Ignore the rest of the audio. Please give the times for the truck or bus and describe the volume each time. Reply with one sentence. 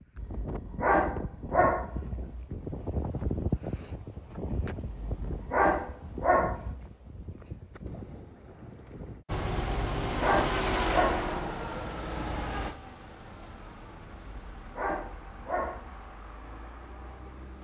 The truck or bus can be heard from 9.2 to 17.5 s, getting quieter.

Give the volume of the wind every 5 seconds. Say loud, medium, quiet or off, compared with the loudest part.
loud, medium, off, off.